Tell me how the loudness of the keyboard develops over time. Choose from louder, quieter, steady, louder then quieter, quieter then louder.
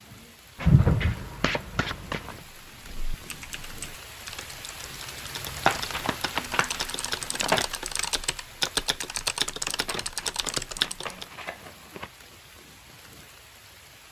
louder.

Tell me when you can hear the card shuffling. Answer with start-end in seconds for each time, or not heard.
0.6-2.4, 5.7-7.7, 9.7-12.1.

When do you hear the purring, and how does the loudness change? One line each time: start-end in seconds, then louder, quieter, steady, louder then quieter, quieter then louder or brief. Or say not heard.
not heard.